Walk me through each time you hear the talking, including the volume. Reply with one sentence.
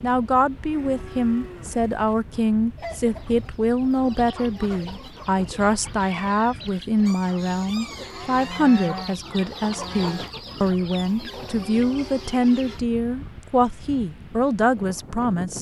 The talking can be heard from 0.0 to 15.5 s, at a steady volume.